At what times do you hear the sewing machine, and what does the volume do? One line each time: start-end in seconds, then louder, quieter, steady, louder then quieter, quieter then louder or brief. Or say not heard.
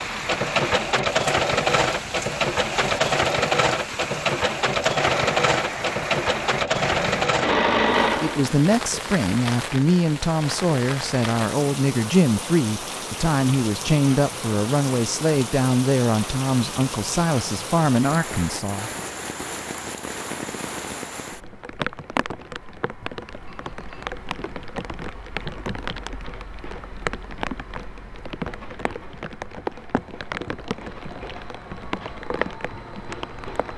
0.0-8.6 steady.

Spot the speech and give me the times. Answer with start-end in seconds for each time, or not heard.
8.2-18.9.